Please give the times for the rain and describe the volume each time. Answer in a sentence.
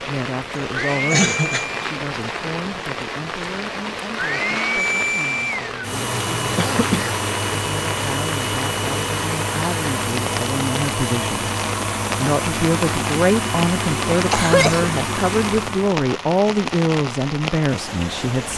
You can hear the rain from 0.0 to 18.5 s, at a steady volume.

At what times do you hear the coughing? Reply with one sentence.
The coughing can be heard from 0.6 to 1.6 s, from 6.5 to 7.2 s and from 14.1 to 14.9 s.